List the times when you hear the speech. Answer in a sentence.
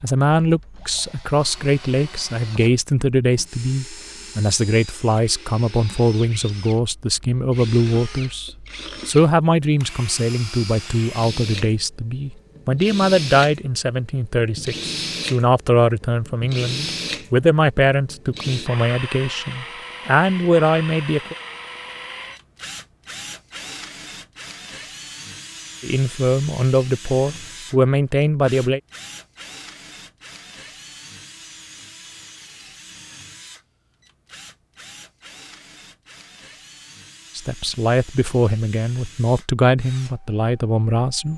The speech can be heard from 0.0 to 21.4 s, from 25.8 to 28.8 s and from 37.4 to 41.3 s.